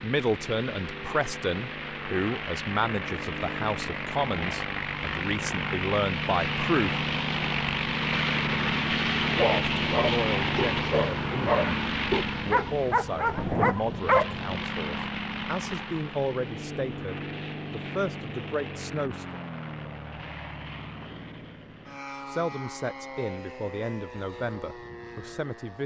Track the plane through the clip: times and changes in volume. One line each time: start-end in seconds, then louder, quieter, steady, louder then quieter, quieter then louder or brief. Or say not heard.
0.0-25.8 louder then quieter.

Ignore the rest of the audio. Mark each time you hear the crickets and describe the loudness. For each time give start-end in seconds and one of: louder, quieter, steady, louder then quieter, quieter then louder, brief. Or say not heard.
not heard.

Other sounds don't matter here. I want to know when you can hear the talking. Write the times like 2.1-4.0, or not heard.
0.0-7.0, 9.3-11.6, 12.4-19.4, 22.2-25.8.